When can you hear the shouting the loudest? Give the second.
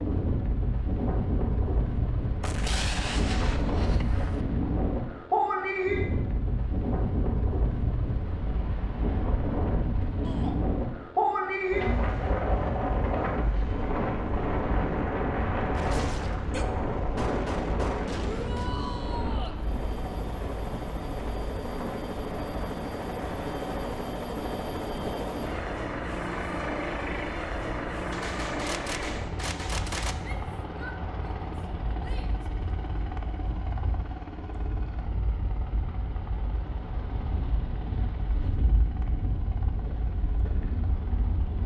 19 s.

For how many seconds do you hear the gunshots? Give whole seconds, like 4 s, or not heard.
7 s.